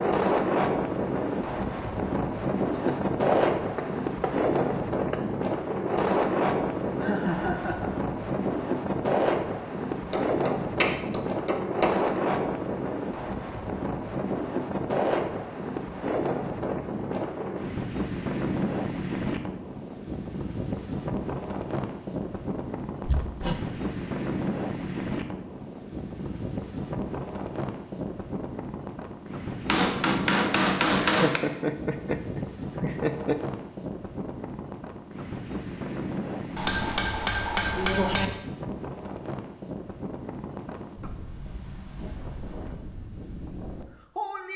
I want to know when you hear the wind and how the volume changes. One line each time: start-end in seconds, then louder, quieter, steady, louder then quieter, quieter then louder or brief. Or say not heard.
0.0-44.5 quieter.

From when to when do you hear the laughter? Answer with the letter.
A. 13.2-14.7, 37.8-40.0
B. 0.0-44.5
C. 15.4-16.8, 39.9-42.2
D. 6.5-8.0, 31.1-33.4
D.